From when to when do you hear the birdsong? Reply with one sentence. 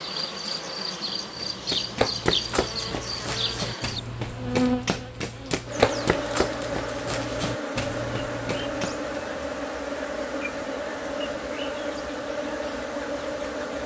You can't hear the birdsong here.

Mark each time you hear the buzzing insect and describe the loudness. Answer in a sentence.
You can hear the buzzing insect from 0.0 to 13.8 s, at a steady volume.